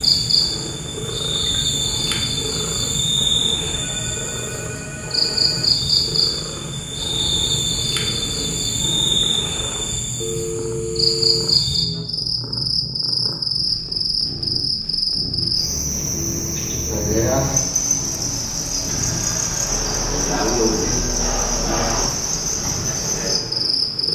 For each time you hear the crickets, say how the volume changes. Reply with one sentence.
The crickets can be heard from 0.0 to 24.1 s, at a steady volume.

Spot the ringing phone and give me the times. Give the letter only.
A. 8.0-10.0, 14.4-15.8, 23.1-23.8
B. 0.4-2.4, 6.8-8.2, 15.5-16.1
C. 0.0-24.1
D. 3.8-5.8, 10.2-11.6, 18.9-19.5
D.